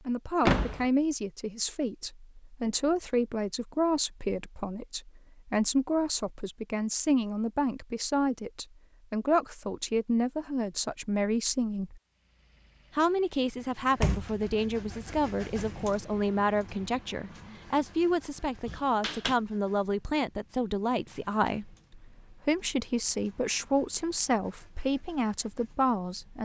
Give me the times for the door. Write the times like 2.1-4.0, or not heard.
0.4-0.8, 14.0-15.2, 18.6-19.4.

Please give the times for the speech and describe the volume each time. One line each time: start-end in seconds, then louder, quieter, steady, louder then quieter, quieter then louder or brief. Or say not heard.
0.1-12.0 steady
12.9-26.4 steady.